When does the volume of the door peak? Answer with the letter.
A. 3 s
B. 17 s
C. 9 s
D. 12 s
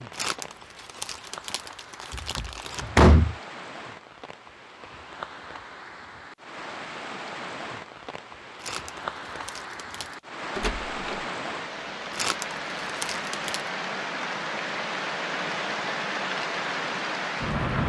A.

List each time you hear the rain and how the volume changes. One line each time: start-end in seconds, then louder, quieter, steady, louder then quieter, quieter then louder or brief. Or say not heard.
0.0-17.8 louder.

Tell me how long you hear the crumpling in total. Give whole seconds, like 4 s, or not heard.
6 s.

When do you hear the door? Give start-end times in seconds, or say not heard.
2.1-3.4, 10.6-11.2.